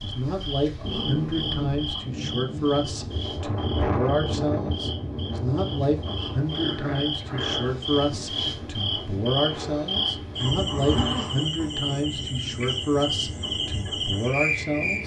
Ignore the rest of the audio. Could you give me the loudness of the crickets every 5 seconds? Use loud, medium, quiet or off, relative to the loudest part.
medium, loud, loud.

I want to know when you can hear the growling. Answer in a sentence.
You can hear the growling from 0.8 to 2.8 s, from 6.5 to 7.8 s and from 10.3 to 11.7 s.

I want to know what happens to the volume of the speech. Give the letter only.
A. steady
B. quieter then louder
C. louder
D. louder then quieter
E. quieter
A.